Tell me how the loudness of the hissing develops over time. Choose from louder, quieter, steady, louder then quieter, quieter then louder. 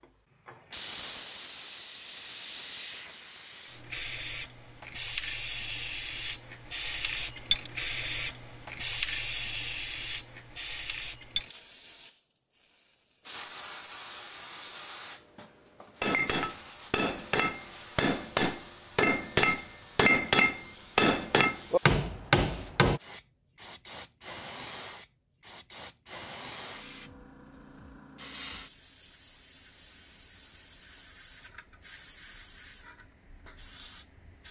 quieter.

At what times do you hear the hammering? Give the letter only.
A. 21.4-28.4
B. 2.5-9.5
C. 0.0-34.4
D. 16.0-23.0
D.